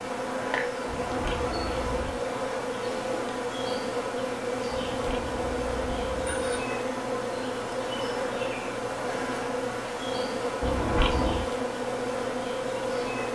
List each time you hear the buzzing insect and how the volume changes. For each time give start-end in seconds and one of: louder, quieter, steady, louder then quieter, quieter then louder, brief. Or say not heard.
0.0-13.3 steady.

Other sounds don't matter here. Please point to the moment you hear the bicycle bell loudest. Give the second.
11 s.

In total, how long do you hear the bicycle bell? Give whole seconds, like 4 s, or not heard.
4 s.